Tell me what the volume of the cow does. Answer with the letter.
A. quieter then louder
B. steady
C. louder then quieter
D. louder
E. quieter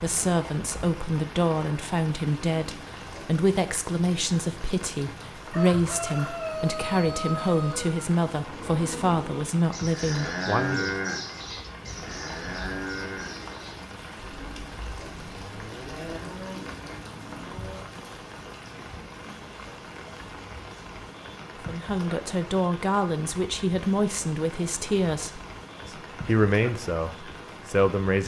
C.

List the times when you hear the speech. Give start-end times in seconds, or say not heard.
0.0-10.9, 21.6-28.2.